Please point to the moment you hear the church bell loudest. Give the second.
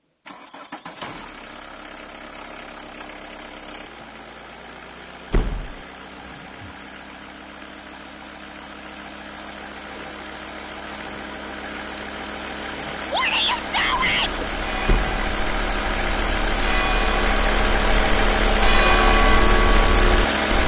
19 s.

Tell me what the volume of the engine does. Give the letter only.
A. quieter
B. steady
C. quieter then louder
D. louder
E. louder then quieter
D.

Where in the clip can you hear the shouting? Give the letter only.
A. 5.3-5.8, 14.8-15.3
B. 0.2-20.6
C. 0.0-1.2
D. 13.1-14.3
D.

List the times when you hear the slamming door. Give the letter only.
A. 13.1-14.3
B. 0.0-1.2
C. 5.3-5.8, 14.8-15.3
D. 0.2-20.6
C.